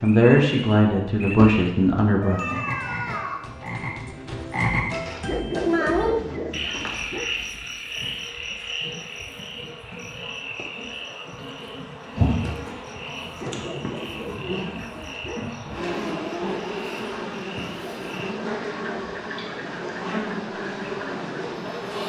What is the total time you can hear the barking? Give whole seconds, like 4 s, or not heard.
4 s.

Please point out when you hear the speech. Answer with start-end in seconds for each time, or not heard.
0.0-2.4.